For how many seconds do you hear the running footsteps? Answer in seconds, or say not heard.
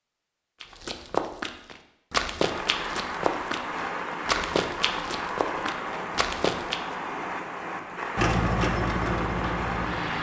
6 s.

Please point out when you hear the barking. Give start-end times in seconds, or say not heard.
not heard.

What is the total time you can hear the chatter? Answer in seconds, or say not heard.
not heard.